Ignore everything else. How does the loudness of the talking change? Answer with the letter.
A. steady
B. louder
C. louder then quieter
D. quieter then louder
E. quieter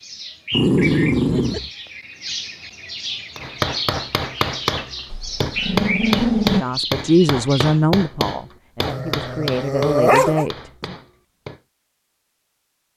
D.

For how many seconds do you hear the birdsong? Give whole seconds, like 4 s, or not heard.
8 s.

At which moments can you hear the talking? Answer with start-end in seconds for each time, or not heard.
6.5-10.9.